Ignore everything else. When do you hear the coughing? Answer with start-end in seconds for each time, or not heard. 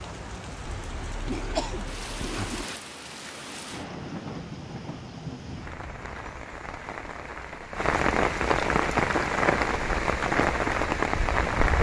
0.7-2.6.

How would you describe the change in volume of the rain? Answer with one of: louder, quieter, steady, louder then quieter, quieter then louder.
louder.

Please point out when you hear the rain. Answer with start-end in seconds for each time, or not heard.
0.0-11.7.